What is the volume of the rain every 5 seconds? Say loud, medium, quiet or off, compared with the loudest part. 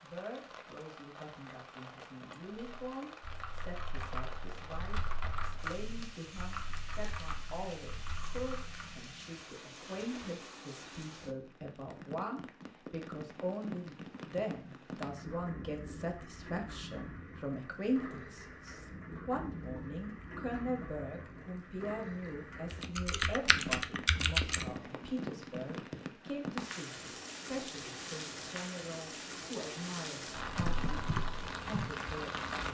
medium, medium, medium, medium, medium, loud, loud.